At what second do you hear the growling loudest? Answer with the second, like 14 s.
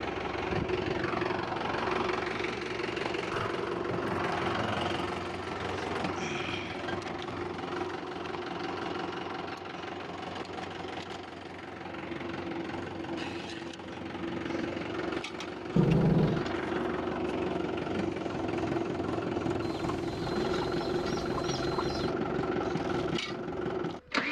16 s.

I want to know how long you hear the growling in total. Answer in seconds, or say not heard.
2 s.